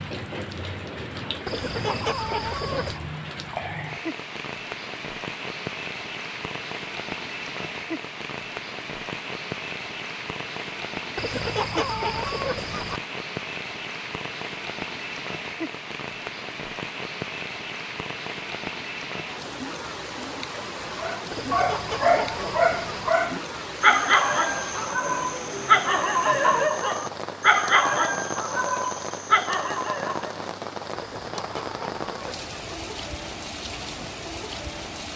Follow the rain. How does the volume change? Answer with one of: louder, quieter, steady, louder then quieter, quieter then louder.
steady.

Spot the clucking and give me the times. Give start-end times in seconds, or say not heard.
1.4-3.0, 11.2-13.0, 21.3-23.1, 30.9-32.8.